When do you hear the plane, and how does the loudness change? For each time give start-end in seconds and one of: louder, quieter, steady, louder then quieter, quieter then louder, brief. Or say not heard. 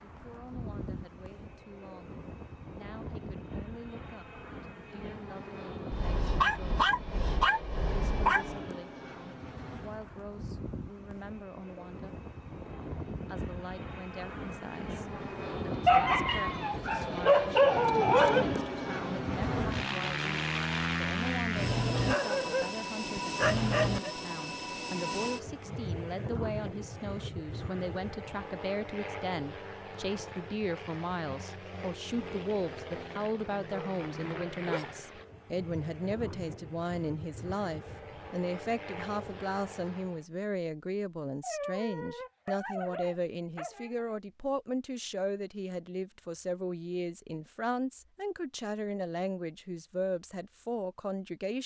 0.0-40.2 louder then quieter.